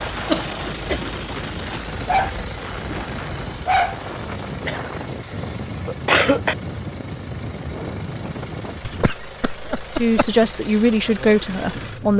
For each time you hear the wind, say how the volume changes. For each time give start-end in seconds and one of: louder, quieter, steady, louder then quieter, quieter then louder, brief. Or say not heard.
0.0-9.2 steady.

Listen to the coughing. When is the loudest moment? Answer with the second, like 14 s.
6 s.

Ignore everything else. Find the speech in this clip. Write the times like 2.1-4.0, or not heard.
9.9-12.1.